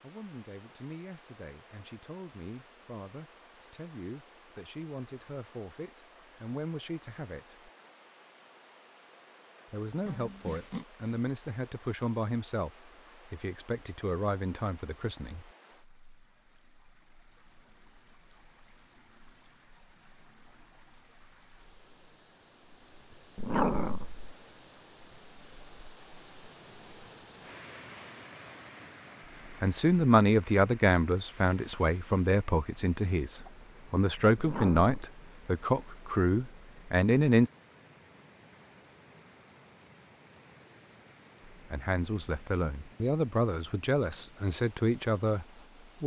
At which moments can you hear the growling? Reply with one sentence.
The growling can be heard from 10.1 to 10.8 s, from 23.4 to 24.2 s and from 34.4 to 35.0 s.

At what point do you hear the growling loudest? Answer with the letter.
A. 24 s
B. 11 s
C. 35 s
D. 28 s
A.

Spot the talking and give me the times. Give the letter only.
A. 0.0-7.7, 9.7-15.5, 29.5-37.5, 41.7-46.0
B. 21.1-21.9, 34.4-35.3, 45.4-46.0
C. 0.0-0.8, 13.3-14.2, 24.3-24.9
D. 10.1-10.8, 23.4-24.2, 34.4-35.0
A.